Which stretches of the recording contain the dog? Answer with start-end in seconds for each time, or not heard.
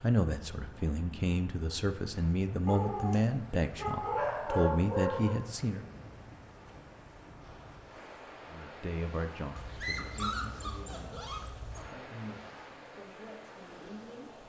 2.6-5.4, 9.6-11.9.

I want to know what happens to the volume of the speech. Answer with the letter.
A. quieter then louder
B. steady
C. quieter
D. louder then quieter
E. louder
C.